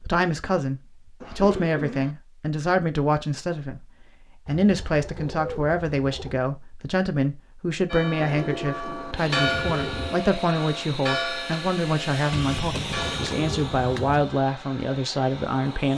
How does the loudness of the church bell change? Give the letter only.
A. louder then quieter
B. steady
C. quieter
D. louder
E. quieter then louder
A.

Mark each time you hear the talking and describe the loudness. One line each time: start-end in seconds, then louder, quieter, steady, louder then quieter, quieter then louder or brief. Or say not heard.
0.0-15.9 steady.